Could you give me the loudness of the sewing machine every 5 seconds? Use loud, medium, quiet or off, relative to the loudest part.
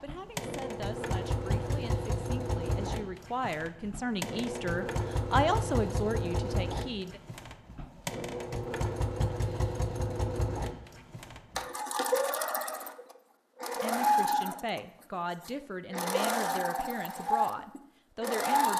medium, medium, loud, loud.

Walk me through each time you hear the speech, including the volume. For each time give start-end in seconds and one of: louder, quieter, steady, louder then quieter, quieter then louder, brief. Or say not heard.
0.0-7.2 louder
13.8-18.7 steady.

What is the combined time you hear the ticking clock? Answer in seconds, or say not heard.
not heard.